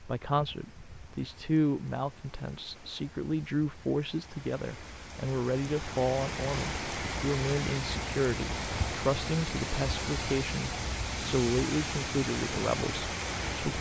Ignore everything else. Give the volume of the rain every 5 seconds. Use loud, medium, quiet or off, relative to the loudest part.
quiet, loud, loud.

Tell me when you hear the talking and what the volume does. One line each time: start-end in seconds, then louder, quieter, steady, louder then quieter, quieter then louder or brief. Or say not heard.
0.0-13.7 steady.